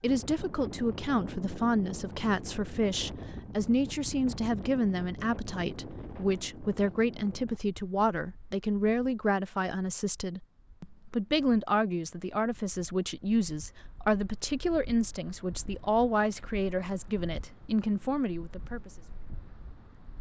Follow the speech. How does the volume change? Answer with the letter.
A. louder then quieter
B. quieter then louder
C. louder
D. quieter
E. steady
E.